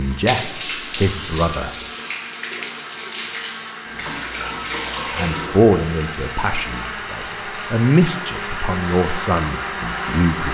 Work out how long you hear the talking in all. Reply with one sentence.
You can hear the talking for 7 seconds altogether.